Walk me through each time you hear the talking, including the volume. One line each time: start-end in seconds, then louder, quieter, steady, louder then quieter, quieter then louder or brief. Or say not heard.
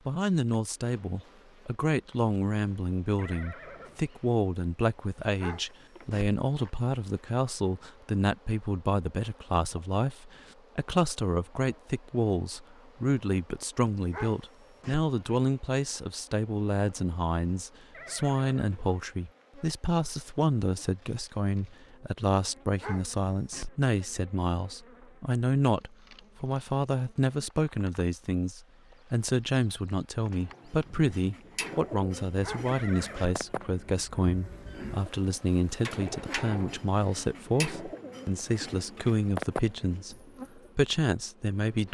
0.1-41.8 steady.